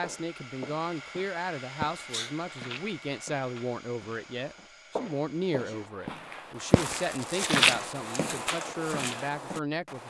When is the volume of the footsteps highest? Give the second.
8 s.